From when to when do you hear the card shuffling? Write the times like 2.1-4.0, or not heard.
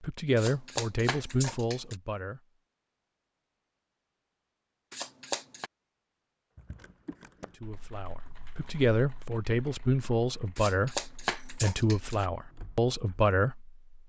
0.3-1.9, 4.9-5.7, 10.6-12.2.